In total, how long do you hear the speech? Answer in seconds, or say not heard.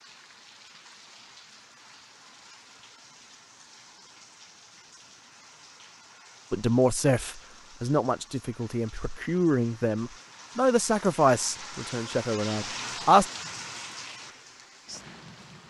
7 s.